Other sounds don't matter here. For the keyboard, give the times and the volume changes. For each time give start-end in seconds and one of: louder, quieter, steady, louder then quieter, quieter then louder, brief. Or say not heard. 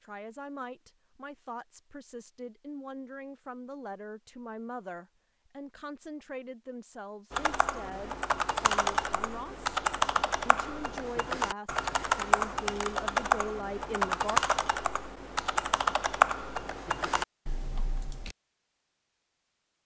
7.3-18.4 steady.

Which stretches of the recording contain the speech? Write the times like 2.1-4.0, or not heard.
0.0-9.7, 10.4-14.4.